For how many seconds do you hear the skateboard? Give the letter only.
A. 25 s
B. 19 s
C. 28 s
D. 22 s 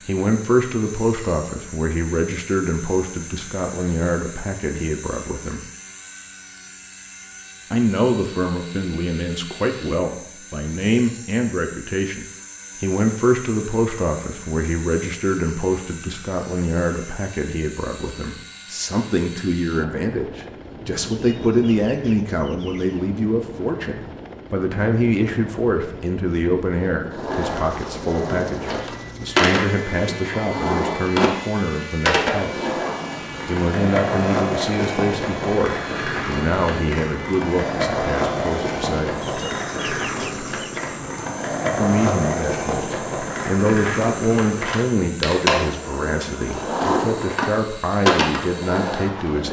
D.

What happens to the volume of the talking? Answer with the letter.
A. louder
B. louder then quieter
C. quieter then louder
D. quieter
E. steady
E.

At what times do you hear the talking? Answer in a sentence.
You can hear the talking from 0.1 to 5.7 s, from 7.7 to 32.8 s, from 33.5 to 39.2 s and from 41.8 to 49.4 s.